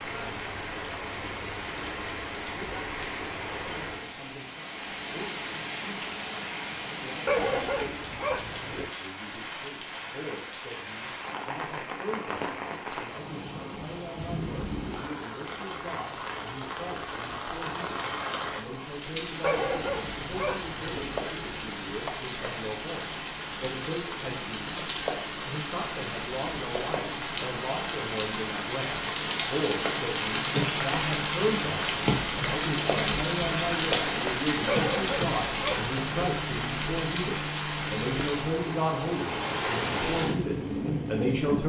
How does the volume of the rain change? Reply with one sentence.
The loudness of the rain goes up.